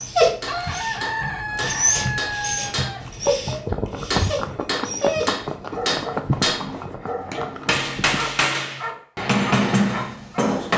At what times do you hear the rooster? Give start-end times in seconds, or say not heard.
0.5-3.0.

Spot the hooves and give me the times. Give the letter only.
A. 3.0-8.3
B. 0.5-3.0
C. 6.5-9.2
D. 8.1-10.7
A.